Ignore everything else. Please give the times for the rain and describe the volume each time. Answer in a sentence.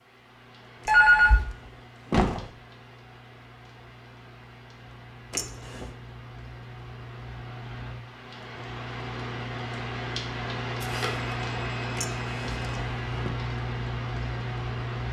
The rain can be heard from 0.0 to 15.0 s, getting louder.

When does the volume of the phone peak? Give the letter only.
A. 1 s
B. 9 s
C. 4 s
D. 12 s
A.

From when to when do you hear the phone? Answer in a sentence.
The phone can be heard from 0.8 to 1.4 s and from 10.8 to 12.8 s.